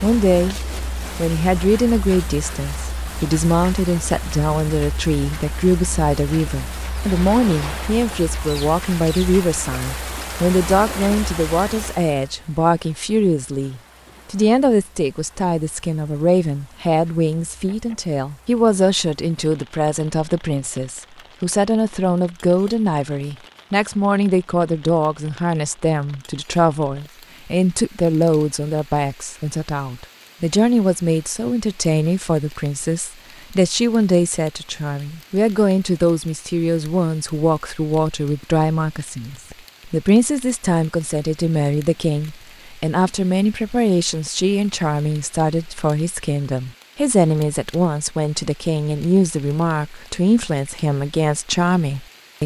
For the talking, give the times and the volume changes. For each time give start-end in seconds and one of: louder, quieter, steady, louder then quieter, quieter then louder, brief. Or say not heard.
0.0-0.6 brief
1.1-52.4 steady.